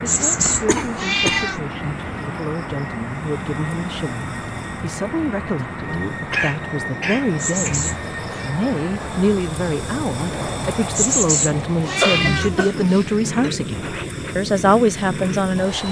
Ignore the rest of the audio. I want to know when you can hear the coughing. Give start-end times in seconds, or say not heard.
0.3-1.4, 6.3-7.8, 12.0-13.5.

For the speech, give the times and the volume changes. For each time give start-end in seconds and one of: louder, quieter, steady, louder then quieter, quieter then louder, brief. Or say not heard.
0.0-15.8 louder.